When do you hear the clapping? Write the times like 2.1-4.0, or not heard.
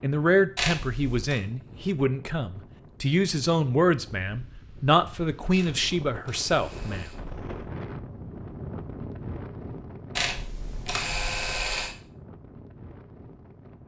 not heard.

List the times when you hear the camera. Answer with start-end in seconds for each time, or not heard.
0.6-1.4, 5.5-7.2, 10.2-11.9.